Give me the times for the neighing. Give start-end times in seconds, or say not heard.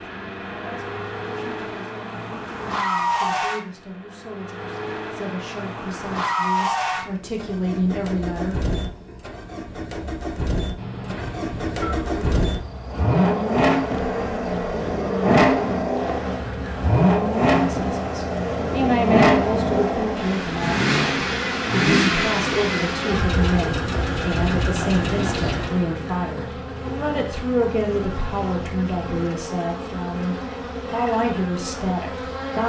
10.8-11.9.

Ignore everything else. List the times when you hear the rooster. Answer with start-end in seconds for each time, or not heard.
not heard.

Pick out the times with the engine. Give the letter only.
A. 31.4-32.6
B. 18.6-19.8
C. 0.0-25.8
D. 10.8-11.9
C.